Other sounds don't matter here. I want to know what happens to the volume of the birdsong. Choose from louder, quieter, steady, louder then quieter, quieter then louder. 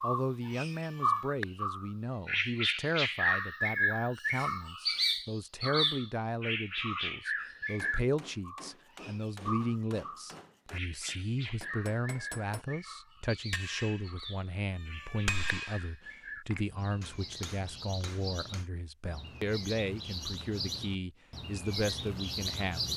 quieter then louder.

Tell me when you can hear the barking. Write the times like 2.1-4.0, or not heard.
not heard.